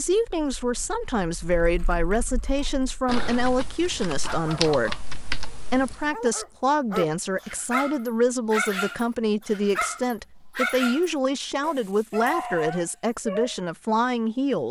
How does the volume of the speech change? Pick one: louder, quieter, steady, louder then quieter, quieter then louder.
steady.